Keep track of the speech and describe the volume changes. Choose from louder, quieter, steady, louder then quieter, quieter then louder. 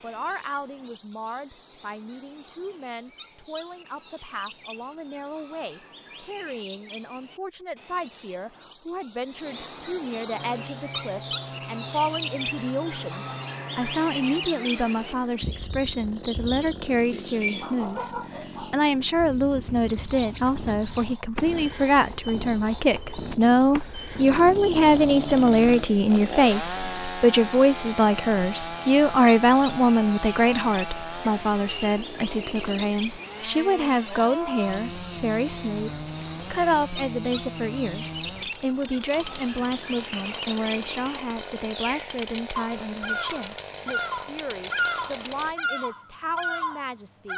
louder then quieter.